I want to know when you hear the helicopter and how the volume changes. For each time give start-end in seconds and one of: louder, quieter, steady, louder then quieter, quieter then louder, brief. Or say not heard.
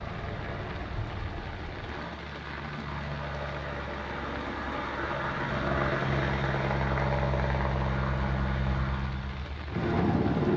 0.0-10.5 louder.